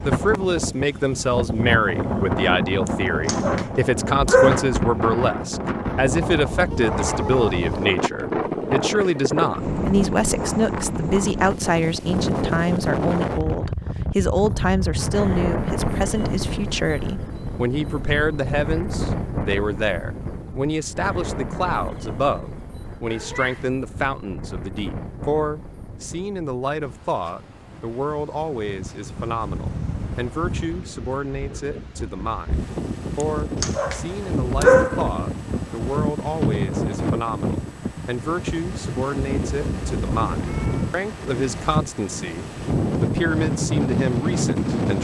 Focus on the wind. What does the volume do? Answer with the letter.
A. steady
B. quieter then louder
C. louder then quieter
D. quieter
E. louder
B.